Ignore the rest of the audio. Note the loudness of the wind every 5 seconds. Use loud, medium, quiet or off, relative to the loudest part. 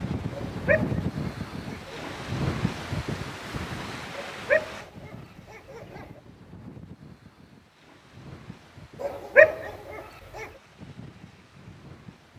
loud, quiet, quiet.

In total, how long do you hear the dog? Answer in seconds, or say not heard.
5 s.